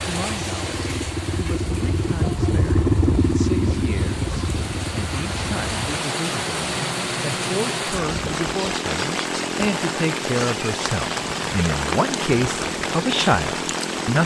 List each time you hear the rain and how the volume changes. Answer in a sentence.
The rain can be heard from 0.0 to 14.2 s, getting louder.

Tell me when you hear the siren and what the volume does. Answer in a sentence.
The siren can't be heard in this clip.